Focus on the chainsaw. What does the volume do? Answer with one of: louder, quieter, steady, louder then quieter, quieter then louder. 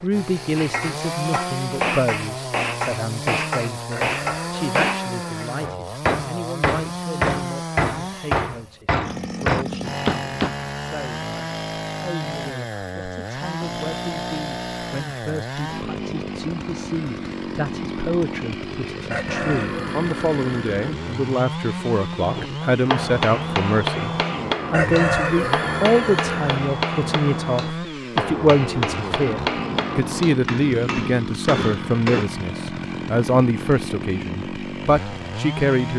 steady.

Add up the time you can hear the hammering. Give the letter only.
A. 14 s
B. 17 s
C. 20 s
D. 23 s
C.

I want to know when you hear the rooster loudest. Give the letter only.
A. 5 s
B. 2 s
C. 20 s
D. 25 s
D.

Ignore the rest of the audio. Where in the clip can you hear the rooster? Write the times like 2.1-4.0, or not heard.
3.9-5.5, 19.1-21.0, 24.7-26.6.